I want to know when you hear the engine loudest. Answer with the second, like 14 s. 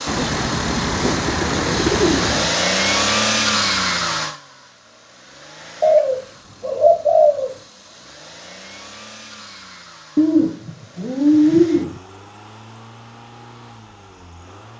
3 s.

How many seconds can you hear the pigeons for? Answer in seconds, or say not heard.
6 s.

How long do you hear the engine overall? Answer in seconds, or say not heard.
15 s.